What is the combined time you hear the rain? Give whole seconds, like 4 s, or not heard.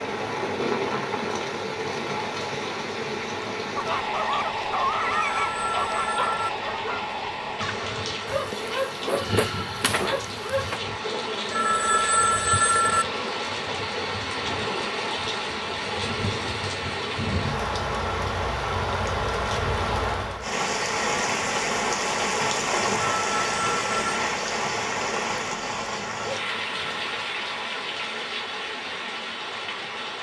30 s.